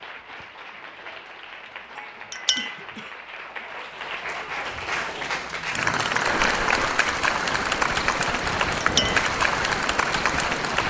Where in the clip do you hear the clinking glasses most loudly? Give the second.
9 s.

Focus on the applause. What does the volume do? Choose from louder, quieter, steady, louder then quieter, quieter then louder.
louder.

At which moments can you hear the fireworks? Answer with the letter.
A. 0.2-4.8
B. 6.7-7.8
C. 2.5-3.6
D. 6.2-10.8
D.